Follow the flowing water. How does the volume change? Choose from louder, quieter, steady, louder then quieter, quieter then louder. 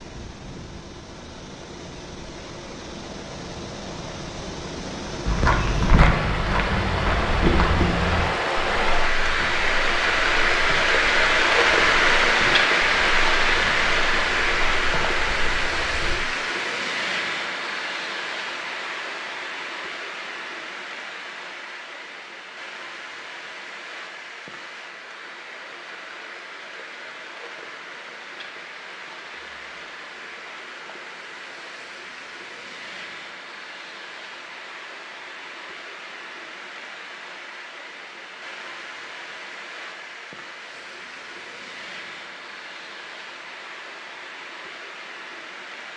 louder then quieter.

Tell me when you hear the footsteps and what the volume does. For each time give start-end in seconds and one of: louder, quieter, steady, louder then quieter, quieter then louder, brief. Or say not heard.
5.2-16.1 quieter.